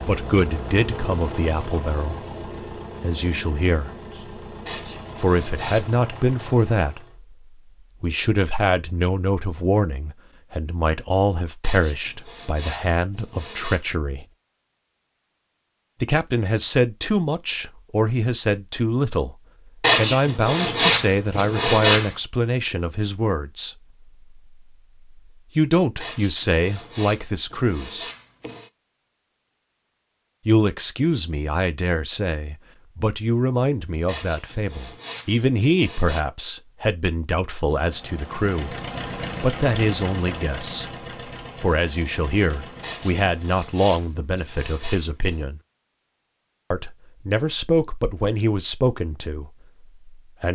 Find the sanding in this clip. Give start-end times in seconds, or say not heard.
4.7-6.0, 11.6-13.8, 19.8-22.1, 26.0-28.7, 34.0-36.2, 42.8-45.5.